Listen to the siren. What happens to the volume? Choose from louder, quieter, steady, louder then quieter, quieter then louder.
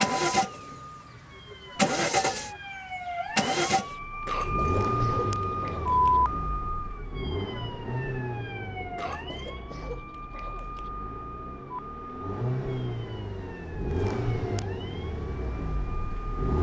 louder then quieter.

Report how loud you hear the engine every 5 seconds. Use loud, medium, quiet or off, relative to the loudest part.
loud, medium, medium, medium.